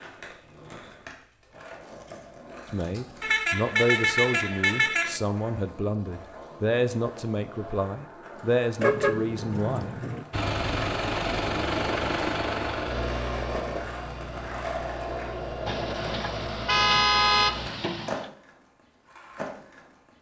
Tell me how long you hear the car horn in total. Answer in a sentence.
The car horn can be heard for 6 seconds in total.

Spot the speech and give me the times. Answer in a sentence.
The speech can be heard from 2.7 to 9.9 s.